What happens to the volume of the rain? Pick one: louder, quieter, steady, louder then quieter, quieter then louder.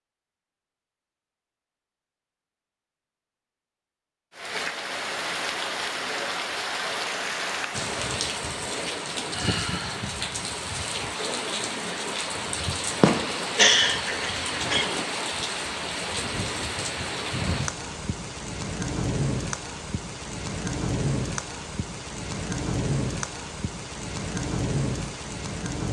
steady.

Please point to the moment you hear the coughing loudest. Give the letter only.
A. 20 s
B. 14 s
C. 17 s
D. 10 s
B.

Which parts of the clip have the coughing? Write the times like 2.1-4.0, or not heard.
13.0-15.1.